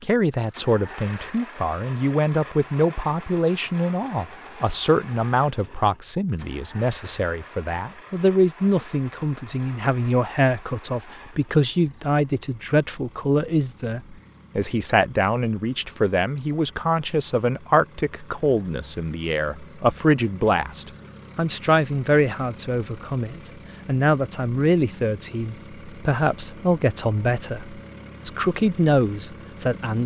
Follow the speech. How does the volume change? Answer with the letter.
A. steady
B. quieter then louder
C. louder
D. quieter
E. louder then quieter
A.